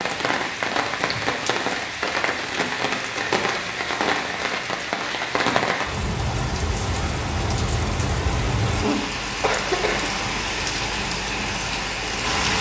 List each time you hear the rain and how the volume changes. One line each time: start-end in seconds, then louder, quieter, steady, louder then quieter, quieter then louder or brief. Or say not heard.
0.0-12.5 steady.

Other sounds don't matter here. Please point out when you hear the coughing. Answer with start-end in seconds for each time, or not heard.
8.8-10.4.